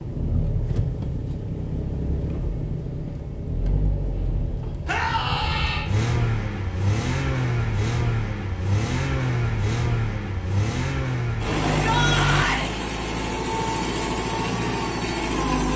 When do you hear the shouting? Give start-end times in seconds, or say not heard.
4.8-5.8, 11.8-12.7.